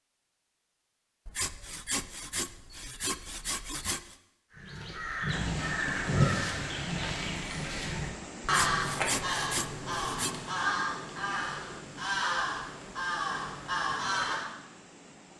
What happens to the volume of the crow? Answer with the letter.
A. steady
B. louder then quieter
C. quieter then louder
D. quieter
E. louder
A.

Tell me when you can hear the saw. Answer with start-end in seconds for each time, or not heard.
1.2-4.2, 8.4-10.3.